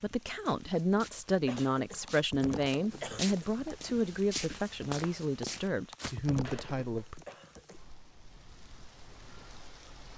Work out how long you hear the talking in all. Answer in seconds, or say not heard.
7 s.